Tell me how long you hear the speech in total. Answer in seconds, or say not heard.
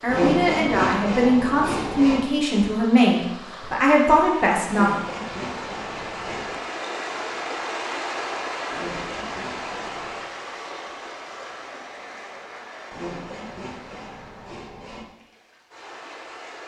5 s.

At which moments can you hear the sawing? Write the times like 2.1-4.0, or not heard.
0.1-2.2, 4.7-6.6, 8.7-10.3, 12.9-15.1.